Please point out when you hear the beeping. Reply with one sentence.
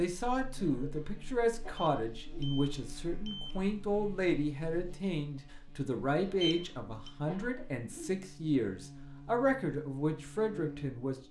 You can hear the beeping from 1.8 to 3.5 s and from 6.4 to 7.1 s.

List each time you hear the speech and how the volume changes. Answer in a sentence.
You can hear the speech from 0.0 to 11.2 s, at a steady volume.